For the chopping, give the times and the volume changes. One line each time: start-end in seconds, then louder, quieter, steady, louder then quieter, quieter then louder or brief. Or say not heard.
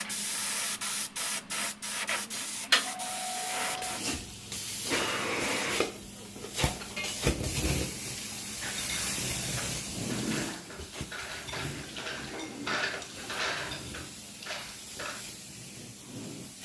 not heard.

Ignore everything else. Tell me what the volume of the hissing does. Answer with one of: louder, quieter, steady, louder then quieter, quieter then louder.
quieter.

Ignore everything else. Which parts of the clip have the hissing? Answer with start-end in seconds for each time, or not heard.
0.0-16.5.